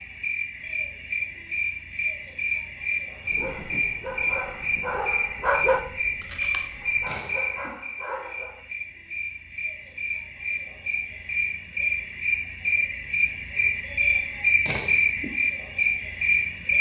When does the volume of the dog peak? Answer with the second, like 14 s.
6 s.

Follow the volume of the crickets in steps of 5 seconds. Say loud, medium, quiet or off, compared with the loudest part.
medium, medium, loud, loud.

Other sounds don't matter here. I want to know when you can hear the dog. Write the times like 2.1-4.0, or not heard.
3.4-8.6.